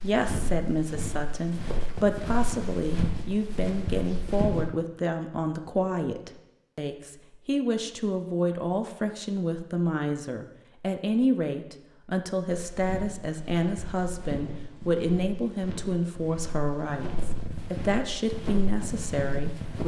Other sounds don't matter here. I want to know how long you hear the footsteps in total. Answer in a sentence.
You can hear the footsteps for 12 seconds altogether.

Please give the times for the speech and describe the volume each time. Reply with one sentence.
The speech can be heard from 0.0 to 19.8 s, at a steady volume.